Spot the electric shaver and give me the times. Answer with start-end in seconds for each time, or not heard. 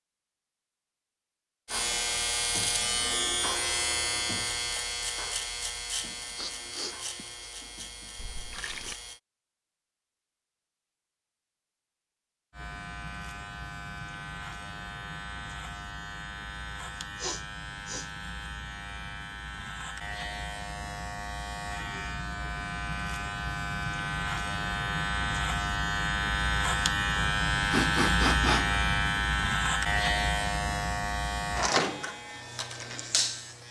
1.6-9.2, 12.5-33.6.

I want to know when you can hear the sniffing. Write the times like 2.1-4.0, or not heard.
6.3-7.5, 17.1-18.1, 27.1-28.8.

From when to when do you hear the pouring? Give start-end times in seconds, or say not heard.
8.2-9.0.